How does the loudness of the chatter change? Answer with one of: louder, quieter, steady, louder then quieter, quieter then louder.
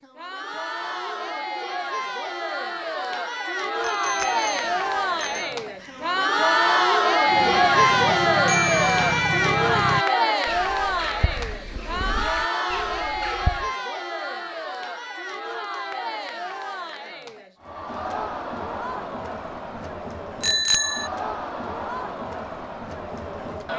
louder then quieter.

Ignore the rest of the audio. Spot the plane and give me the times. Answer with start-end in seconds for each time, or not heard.
not heard.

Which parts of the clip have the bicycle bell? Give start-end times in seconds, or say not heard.
3.8-5.5, 8.4-9.5, 20.4-21.1.